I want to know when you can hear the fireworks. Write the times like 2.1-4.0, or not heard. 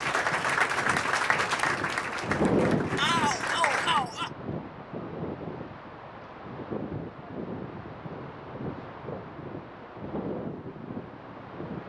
not heard.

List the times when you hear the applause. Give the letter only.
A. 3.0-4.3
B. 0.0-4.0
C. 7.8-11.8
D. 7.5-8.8
B.